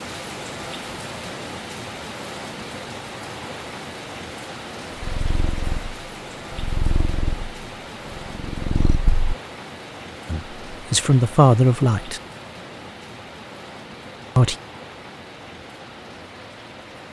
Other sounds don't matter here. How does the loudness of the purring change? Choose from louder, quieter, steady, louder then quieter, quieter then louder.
quieter then louder.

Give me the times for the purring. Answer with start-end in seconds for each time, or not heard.
5.0-9.3.